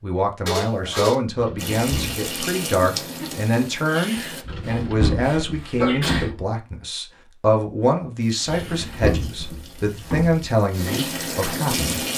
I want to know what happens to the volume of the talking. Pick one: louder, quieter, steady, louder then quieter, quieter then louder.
steady.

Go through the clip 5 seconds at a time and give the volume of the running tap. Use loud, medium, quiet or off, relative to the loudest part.
loud, quiet, loud.